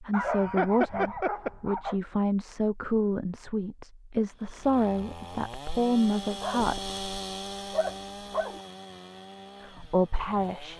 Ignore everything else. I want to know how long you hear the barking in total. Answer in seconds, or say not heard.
4 s.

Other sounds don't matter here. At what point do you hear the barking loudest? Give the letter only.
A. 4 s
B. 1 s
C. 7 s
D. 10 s
B.